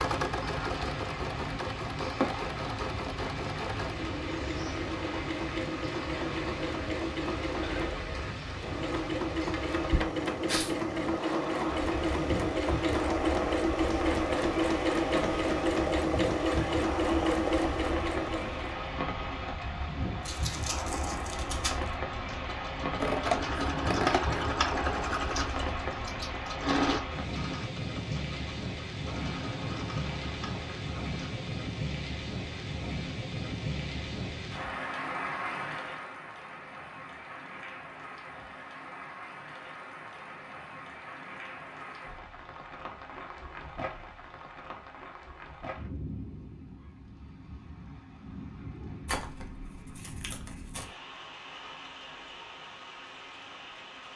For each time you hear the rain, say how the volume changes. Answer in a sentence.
The rain can be heard from 0.0 to 54.1 s, getting quieter.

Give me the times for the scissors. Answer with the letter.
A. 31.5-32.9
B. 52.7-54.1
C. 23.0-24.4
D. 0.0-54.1
C.